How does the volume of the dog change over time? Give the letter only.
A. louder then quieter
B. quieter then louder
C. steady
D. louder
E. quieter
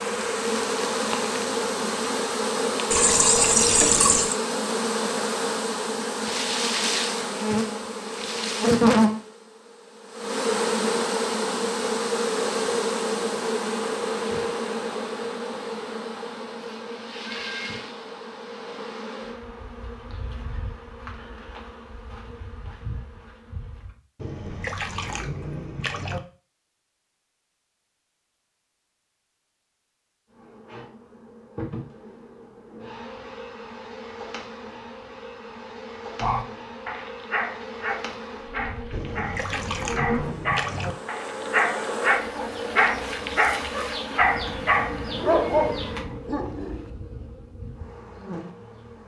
D.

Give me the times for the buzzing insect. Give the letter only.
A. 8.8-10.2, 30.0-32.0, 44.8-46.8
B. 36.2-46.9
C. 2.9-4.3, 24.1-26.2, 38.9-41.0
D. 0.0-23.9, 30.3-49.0
D.